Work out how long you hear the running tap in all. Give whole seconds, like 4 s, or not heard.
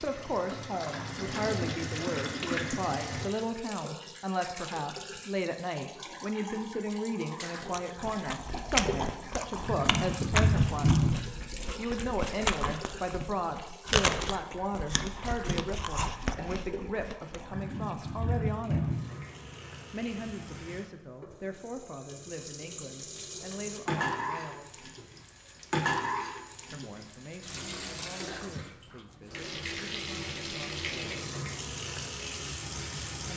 33 s.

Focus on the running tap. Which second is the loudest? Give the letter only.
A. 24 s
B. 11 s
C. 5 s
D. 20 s
B.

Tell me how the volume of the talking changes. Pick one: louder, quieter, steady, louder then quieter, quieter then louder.
quieter.